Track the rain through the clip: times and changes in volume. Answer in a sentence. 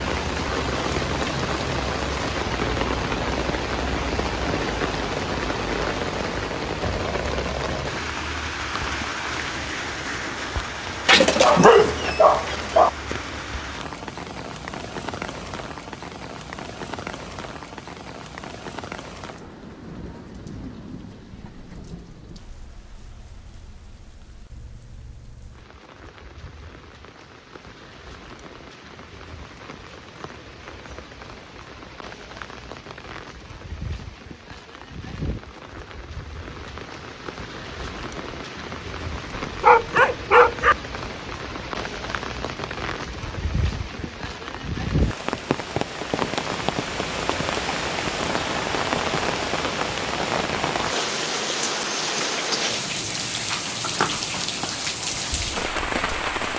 You can hear the rain from 0.0 to 56.5 s, getting quieter then louder.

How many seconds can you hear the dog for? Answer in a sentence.
The dog can be heard for 3 seconds in total.